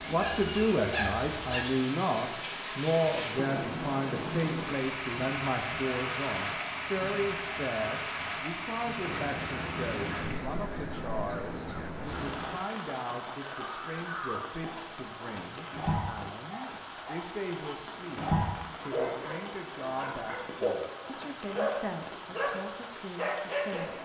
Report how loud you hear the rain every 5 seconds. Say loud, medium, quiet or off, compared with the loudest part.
loud, loud, medium, medium, medium.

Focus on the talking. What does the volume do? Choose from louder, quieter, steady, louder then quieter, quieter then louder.
quieter.